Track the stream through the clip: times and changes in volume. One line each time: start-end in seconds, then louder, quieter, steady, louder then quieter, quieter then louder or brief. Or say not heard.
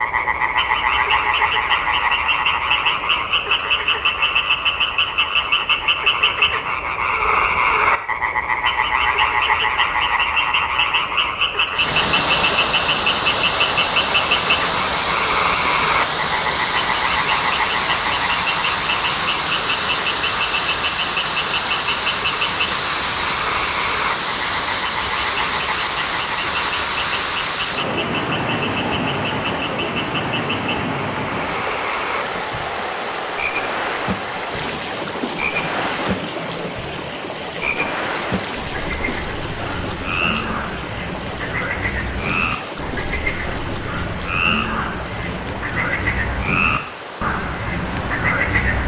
11.7-48.8 quieter.